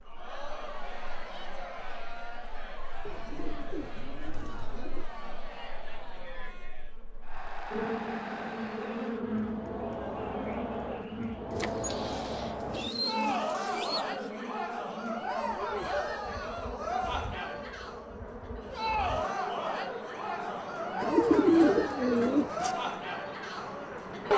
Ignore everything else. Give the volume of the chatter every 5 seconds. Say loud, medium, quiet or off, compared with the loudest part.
medium, medium, loud, loud, loud.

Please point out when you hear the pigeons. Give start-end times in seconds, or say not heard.
3.0-5.0, 11.5-14.3, 21.0-22.8.